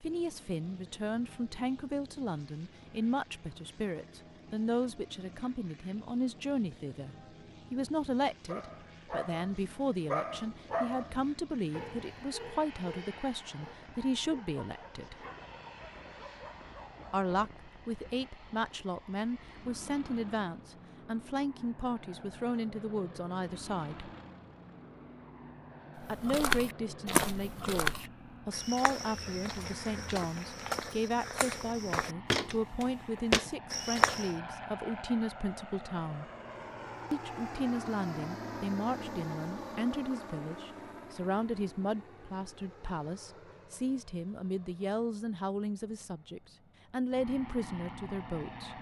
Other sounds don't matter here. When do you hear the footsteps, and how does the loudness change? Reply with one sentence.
The footsteps can be heard from 26.1 to 34.3 s, getting quieter then louder.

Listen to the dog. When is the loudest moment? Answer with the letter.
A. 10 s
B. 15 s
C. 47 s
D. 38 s
A.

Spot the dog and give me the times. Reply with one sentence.
The dog can be heard from 8.4 to 17.2 s.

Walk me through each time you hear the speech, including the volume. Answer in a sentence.
The speech can be heard from 0.0 to 15.2 s, at a steady volume; from 17.1 to 24.1 s, at a steady volume; from 26.1 to 36.2 s, at a steady volume; and from 37.1 to 48.7 s, at a steady volume.